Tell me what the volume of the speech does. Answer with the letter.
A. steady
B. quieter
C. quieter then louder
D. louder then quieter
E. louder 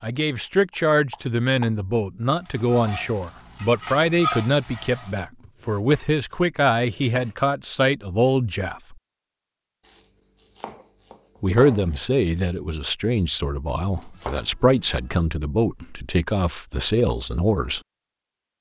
A.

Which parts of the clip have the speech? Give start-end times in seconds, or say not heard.
0.0-8.9, 11.4-17.8.